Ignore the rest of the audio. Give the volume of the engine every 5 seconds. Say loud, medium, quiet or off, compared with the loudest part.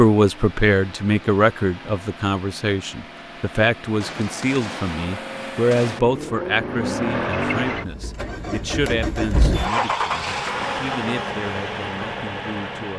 quiet, loud, loud.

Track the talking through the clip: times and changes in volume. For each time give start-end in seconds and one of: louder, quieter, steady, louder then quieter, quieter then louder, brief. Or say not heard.
0.0-12.9 quieter.